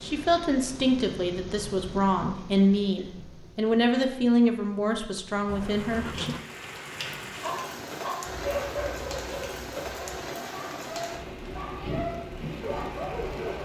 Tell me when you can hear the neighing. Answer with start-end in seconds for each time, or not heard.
5.5-6.5.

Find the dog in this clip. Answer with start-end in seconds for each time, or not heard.
7.4-13.6.